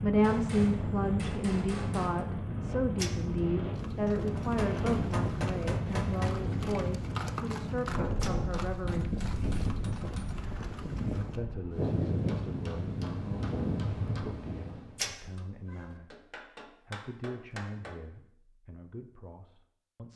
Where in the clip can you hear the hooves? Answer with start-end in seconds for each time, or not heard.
3.6-11.4.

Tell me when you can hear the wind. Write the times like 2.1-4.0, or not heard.
0.0-15.0.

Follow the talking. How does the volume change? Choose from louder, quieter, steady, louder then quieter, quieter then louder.
quieter.